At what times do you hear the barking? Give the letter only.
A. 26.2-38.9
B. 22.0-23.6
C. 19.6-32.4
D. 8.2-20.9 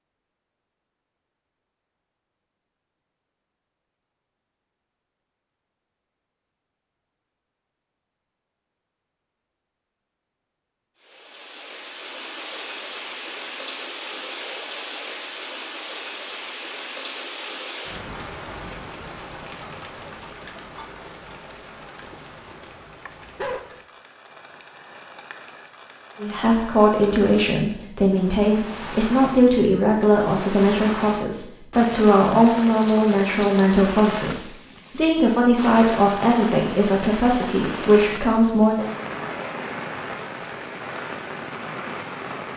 B.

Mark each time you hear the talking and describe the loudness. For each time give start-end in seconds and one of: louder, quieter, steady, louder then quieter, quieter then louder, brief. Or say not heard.
26.2-38.9 steady.